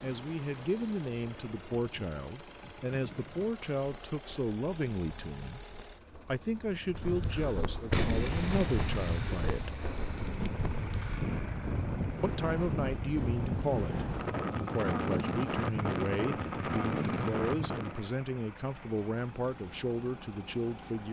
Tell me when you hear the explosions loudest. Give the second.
8 s.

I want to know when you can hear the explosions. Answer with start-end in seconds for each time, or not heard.
7.9-10.2.